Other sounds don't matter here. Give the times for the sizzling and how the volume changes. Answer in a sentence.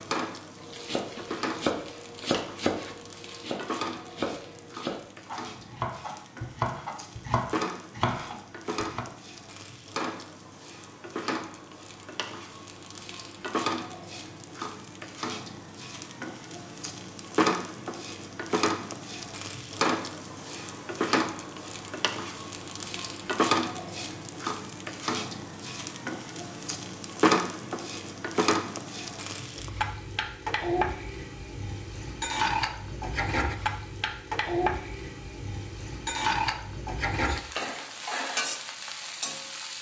The sizzling can be heard from 0.0 to 39.7 s, getting louder.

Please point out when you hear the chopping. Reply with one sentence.
You can hear the chopping from 0.6 to 9.1 s.